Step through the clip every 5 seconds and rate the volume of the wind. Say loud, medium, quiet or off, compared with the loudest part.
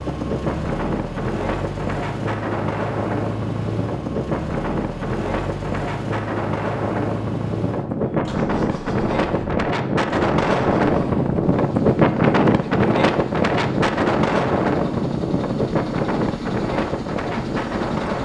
medium, medium, loud, medium.